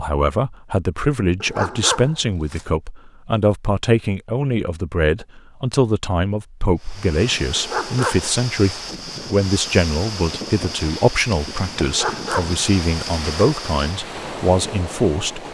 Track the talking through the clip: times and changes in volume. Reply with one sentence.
You can hear the talking from 0.0 to 15.4 s, at a steady volume.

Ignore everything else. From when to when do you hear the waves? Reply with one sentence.
The waves can be heard from 6.8 to 15.5 s.